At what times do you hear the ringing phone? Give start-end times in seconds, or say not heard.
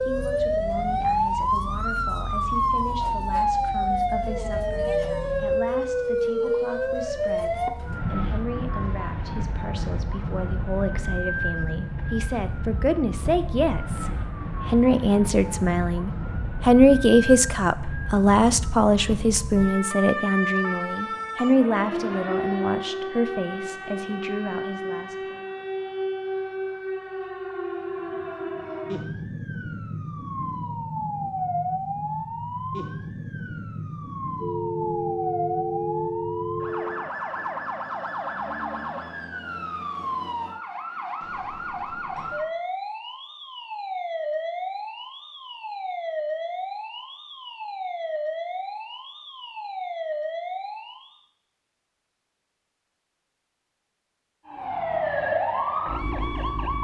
34.4-37.1.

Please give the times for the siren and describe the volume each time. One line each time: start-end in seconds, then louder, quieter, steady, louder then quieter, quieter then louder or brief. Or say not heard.
0.0-51.2 quieter
54.5-56.7 brief.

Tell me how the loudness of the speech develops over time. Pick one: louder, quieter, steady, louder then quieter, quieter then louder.
louder then quieter.